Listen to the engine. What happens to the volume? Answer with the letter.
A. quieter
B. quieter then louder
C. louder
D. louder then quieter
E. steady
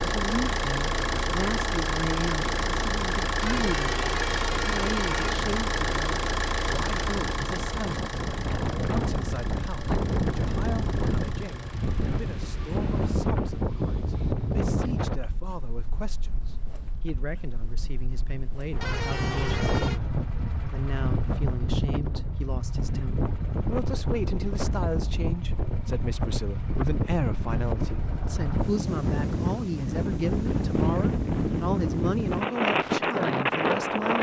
A.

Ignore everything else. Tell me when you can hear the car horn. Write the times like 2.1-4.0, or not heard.
3.4-5.3, 18.8-20.0.